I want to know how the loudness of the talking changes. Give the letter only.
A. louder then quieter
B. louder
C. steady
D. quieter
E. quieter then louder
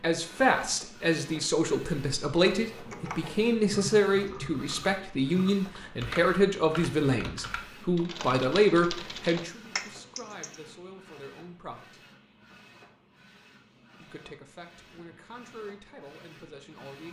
D.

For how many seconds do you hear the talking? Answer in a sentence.
The talking can be heard for 15 seconds in total.